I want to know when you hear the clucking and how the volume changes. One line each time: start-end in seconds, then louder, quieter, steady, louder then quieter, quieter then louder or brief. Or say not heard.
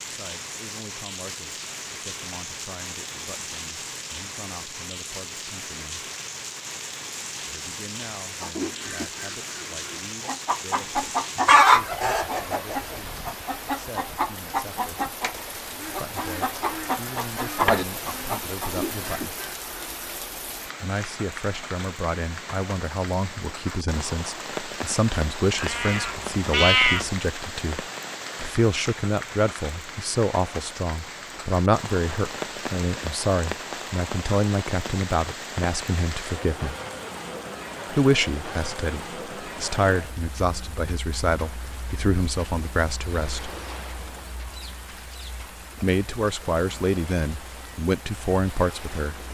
8.4-20.1 louder then quieter.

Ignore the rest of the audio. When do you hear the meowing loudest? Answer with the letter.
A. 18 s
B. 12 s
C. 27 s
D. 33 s
C.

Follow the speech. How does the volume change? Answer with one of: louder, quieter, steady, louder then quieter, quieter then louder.
louder.